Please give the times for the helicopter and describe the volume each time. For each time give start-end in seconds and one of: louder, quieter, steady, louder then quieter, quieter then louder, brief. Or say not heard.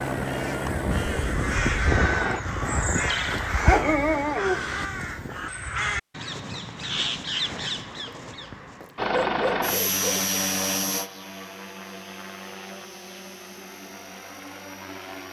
0.0-2.4 brief
8.9-15.2 quieter.